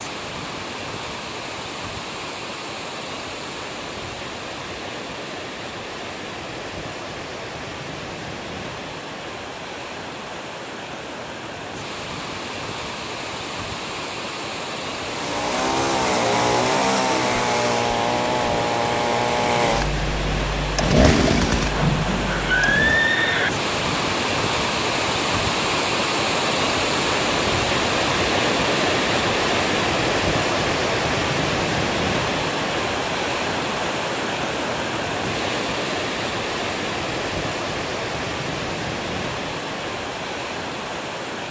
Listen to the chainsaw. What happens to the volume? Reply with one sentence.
The volume of the chainsaw stays about the same.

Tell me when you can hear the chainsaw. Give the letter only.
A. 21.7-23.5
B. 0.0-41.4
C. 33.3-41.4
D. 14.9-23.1
D.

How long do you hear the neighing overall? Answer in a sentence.
The neighing can be heard for 2 seconds in total.